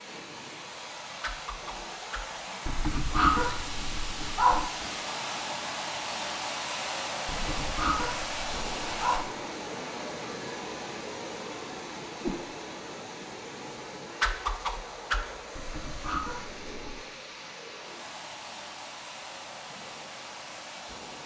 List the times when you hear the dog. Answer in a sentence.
You can hear the dog from 2.6 to 4.7 s, from 7.2 to 9.2 s and from 15.6 to 16.8 s.